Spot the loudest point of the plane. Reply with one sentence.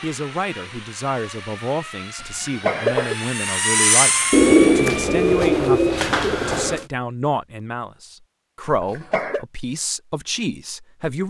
The volume of the plane peaks at 4 seconds.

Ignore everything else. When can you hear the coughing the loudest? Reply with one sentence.
The loudest moment of the coughing is at 3 seconds.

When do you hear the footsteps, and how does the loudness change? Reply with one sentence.
The footsteps can't be heard in this clip.